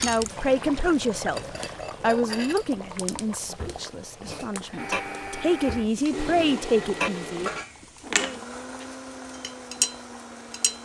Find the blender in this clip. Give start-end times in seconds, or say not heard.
4.8-10.7.